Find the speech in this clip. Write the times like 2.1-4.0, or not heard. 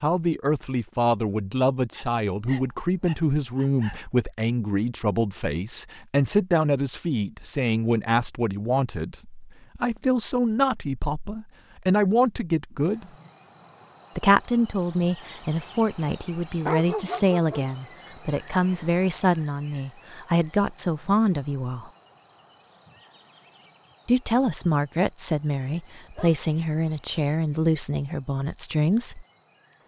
0.0-13.1, 14.2-21.9, 24.1-29.2.